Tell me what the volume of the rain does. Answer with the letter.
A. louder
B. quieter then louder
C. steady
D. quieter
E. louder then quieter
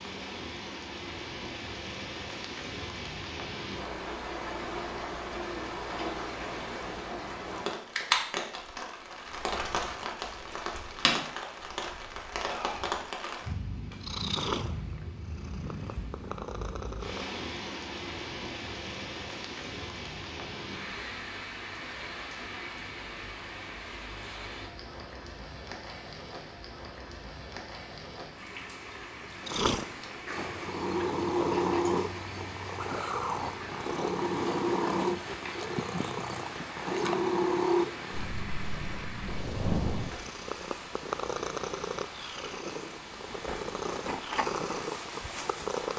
D.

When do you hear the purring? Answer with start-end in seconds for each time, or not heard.
13.9-17.2, 29.4-45.9.